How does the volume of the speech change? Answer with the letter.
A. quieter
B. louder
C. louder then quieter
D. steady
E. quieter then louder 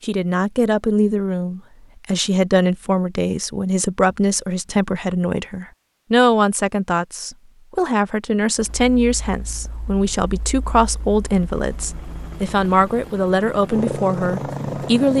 D.